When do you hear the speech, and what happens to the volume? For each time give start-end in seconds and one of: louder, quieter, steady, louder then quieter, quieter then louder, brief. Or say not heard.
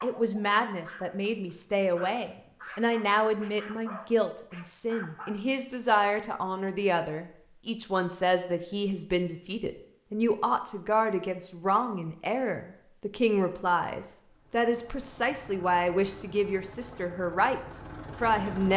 0.0-18.7 steady.